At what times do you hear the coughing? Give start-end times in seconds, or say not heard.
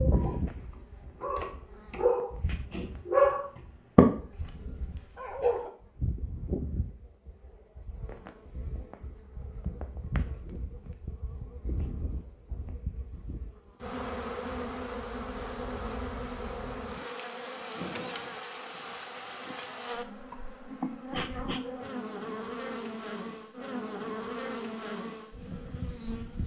not heard.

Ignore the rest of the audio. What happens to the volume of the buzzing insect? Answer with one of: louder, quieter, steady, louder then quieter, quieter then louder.
louder.